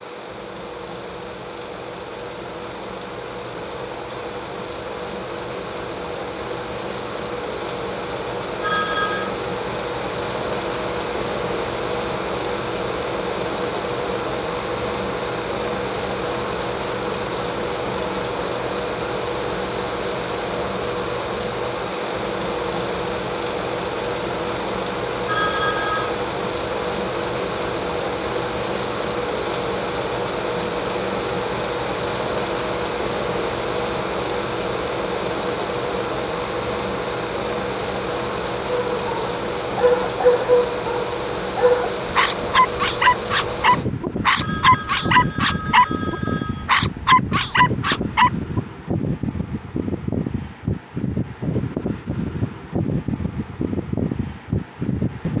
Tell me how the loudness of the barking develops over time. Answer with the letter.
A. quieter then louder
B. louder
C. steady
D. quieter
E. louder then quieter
C.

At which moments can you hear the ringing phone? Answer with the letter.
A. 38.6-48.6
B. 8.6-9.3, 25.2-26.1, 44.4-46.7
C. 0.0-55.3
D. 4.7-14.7
B.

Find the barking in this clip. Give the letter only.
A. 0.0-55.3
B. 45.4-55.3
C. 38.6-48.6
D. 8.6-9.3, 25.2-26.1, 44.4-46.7
C.